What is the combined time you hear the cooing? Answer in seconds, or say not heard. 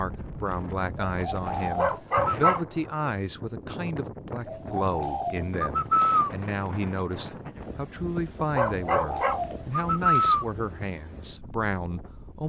5 s.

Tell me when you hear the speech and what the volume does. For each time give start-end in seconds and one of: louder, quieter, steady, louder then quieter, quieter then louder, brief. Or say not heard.
0.0-12.4 steady.